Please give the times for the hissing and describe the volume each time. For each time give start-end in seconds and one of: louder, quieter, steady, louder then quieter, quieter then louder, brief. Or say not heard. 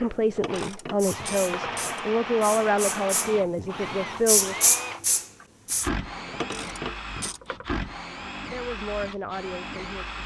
0.0-5.9 louder.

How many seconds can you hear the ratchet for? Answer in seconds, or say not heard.
3 s.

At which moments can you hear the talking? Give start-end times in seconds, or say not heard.
0.0-4.5, 8.5-10.2.